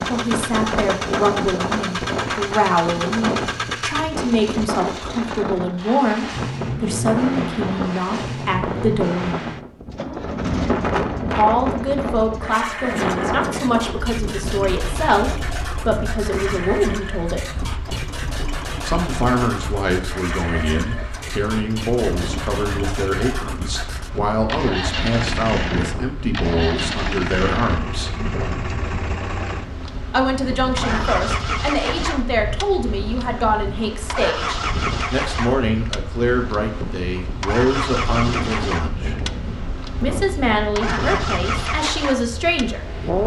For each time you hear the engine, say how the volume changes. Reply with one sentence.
You can hear the engine from 0.0 to 43.2 s, at a steady volume.